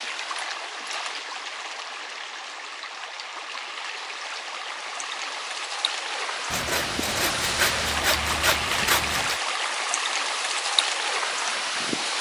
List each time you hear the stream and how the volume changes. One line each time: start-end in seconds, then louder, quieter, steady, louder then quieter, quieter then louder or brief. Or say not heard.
0.0-12.1 louder.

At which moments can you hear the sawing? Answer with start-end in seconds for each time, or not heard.
6.5-9.4.